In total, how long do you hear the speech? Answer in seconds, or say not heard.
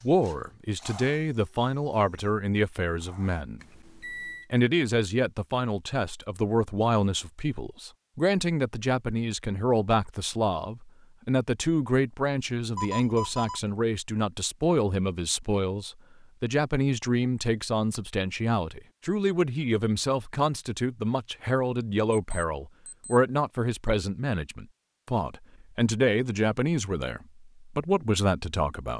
28 s.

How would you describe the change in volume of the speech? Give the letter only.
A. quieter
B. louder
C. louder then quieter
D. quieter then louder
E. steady
E.